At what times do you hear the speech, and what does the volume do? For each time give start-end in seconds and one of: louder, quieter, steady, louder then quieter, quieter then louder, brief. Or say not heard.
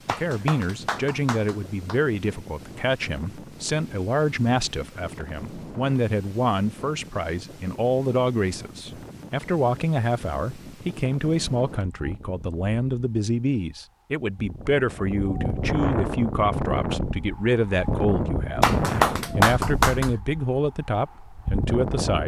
0.1-22.2 steady.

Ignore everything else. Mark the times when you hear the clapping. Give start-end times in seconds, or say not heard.
0.1-2.0, 18.6-20.1.